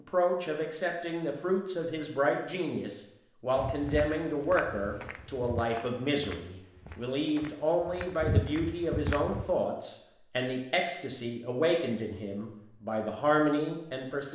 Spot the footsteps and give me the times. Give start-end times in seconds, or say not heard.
3.5-9.6.